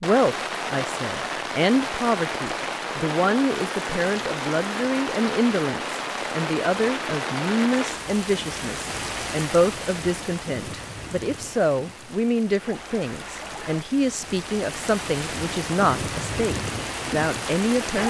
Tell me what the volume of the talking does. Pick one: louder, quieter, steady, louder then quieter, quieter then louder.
steady.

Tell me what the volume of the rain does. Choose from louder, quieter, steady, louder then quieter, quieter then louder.
quieter then louder.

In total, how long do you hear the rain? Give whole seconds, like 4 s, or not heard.
18 s.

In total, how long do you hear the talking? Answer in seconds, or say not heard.
18 s.